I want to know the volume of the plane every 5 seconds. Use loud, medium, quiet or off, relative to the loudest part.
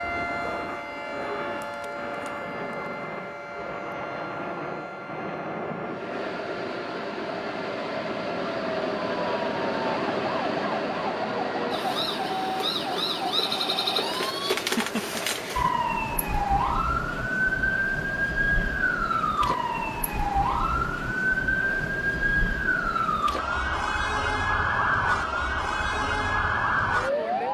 medium, loud, loud, medium, medium, medium.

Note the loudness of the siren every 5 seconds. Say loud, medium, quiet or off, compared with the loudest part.
medium, quiet, loud, loud, loud, loud.